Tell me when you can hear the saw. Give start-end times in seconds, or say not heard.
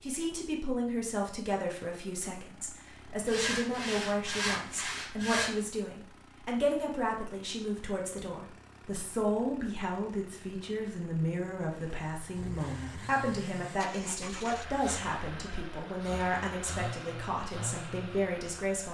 3.2-5.5.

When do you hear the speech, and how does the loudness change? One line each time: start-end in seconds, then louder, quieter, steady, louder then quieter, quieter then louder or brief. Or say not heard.
0.0-18.8 steady.